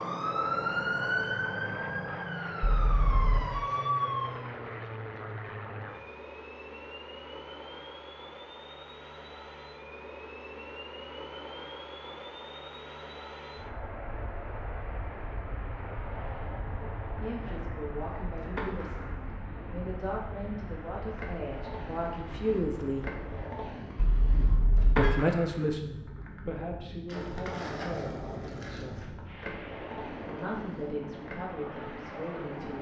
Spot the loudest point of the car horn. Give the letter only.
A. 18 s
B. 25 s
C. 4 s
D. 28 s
B.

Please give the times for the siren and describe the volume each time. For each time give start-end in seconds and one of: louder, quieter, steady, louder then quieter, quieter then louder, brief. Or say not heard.
0.0-4.5 quieter then louder.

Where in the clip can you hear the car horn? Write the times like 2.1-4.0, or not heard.
2.6-3.5, 23.9-25.2.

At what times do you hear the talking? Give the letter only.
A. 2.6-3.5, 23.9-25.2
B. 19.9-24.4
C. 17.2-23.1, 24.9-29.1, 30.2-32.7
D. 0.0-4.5
C.